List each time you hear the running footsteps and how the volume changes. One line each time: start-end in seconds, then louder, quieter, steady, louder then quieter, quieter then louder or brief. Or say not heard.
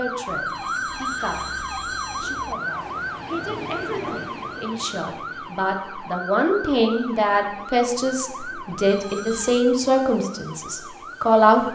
not heard.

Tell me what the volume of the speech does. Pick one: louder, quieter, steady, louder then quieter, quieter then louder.
louder.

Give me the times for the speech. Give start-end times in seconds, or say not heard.
0.0-11.6.